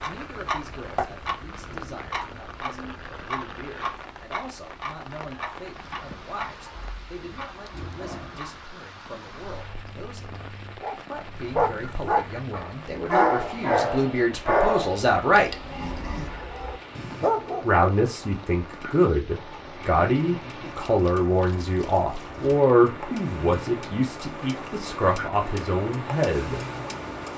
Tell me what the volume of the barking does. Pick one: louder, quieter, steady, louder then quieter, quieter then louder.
quieter then louder.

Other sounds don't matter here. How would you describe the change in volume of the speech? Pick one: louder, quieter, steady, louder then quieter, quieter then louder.
louder.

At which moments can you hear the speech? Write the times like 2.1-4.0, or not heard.
0.1-15.6, 17.6-26.6.